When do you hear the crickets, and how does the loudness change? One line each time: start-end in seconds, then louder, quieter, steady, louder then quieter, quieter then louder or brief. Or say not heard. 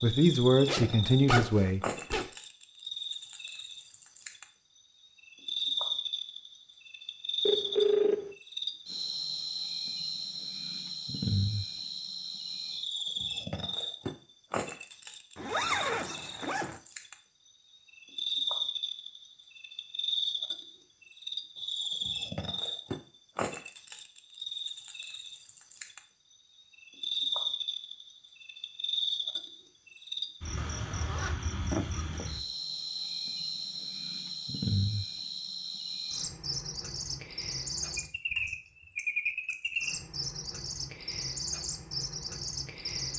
0.0-43.1 steady.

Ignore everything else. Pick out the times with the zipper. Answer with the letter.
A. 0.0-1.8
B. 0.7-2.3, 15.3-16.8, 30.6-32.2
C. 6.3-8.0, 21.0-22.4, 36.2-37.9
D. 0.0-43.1
B.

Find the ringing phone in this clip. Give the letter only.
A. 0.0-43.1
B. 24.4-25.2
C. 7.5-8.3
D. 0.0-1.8
C.